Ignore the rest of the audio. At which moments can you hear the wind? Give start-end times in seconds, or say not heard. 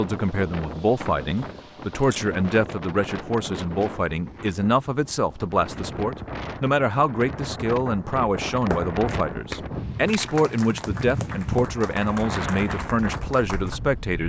0.0-14.2.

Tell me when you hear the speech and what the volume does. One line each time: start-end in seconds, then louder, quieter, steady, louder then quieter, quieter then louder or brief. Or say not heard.
0.0-14.2 steady.